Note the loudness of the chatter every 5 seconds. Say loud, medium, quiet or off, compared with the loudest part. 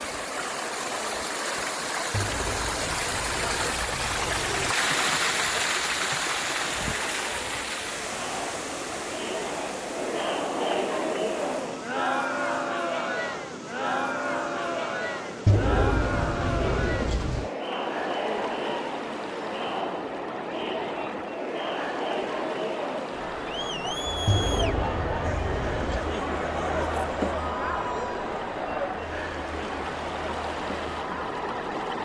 medium, medium, loud, loud, loud, loud, medium.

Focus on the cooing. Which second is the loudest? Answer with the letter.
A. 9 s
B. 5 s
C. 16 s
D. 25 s
C.